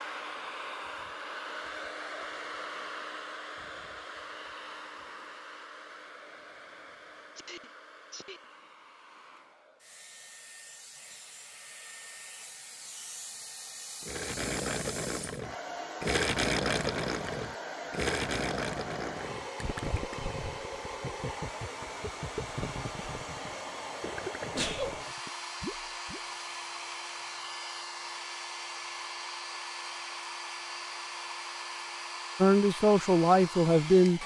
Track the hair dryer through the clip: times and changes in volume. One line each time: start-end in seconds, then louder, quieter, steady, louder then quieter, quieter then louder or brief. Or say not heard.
0.0-34.2 quieter then louder.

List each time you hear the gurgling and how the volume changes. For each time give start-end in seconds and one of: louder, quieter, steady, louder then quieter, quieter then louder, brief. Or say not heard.
14.0-26.2 quieter.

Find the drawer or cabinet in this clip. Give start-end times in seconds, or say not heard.
not heard.